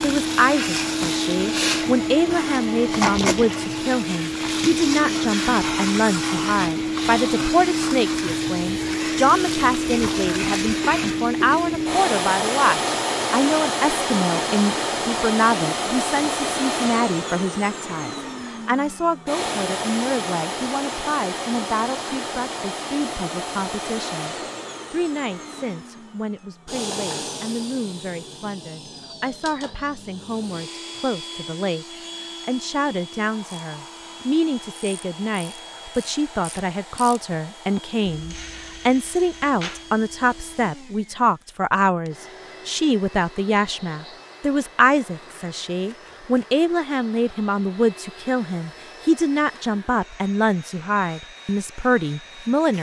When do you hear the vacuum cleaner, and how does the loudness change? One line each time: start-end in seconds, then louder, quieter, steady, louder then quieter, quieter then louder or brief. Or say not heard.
0.0-52.7 quieter.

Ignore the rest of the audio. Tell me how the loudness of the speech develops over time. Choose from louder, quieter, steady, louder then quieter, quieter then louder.
quieter then louder.